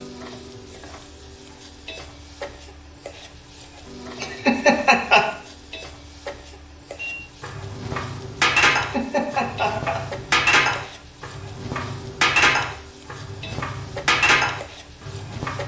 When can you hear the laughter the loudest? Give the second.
5 s.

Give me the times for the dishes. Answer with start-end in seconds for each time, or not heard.
7.0-15.6.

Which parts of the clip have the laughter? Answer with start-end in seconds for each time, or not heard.
4.2-5.3, 8.8-10.0.